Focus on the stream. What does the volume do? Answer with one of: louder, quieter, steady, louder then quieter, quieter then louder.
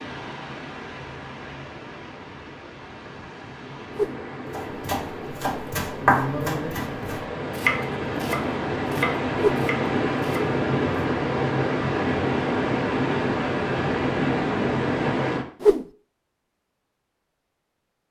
louder.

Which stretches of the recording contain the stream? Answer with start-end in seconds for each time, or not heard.
0.0-15.4.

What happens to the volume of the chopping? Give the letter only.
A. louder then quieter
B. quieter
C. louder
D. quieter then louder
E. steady
A.